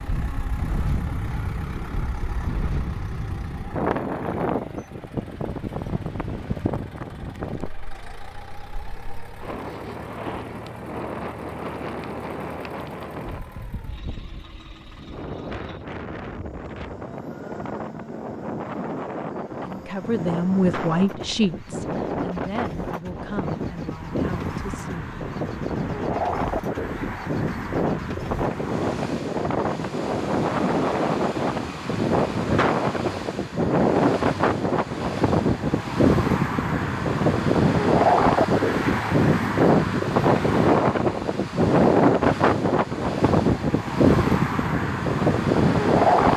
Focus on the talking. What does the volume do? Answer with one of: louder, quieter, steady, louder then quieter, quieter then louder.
quieter.